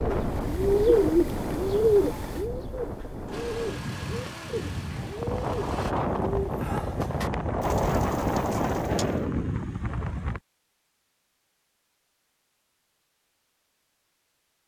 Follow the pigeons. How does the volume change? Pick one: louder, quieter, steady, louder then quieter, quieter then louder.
quieter.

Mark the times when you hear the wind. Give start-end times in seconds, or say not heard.
0.0-10.4.